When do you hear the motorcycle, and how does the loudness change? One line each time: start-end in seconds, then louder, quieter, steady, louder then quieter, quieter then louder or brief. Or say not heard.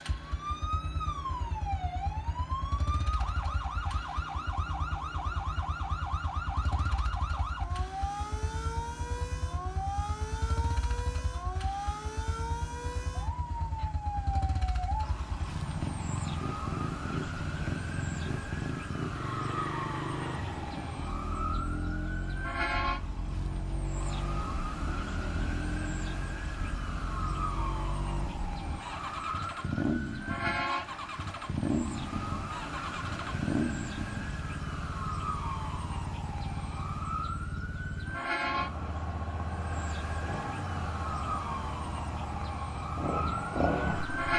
0.0-44.3 louder.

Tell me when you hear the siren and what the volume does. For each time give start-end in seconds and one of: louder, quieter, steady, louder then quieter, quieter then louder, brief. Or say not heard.
0.0-44.3 steady.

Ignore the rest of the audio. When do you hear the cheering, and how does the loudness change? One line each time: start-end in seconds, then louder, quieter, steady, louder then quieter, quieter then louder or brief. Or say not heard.
not heard.